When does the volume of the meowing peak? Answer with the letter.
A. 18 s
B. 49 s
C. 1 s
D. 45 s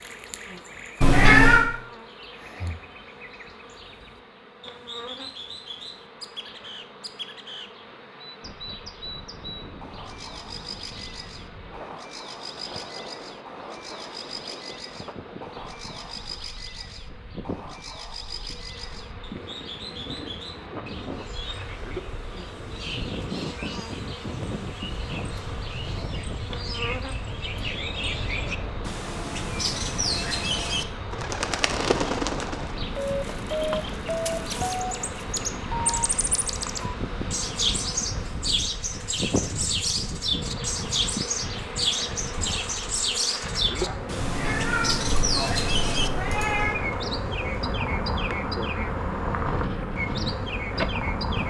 C.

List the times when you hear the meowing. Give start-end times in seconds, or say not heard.
1.0-1.6, 44.2-46.8.